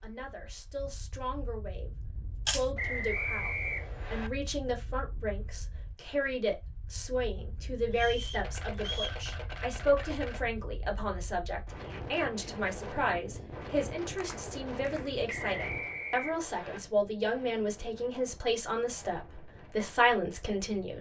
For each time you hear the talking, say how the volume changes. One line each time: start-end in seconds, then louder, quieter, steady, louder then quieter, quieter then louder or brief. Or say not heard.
0.0-20.9 louder.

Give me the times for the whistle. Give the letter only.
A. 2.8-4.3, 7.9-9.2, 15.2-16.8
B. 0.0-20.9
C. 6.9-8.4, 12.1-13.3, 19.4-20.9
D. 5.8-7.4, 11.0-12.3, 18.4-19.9
A.